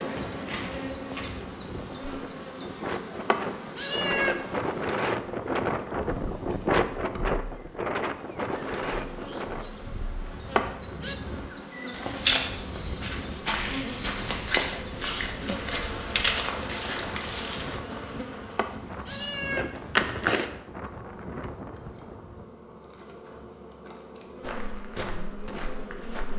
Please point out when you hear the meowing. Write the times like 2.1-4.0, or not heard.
3.2-4.4, 10.6-11.2, 18.6-20.5.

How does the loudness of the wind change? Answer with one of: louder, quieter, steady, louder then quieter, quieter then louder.
louder then quieter.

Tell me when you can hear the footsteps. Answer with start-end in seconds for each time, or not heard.
0.0-1.5, 11.9-17.8, 24.4-26.3.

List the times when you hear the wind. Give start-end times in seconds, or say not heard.
0.0-22.4.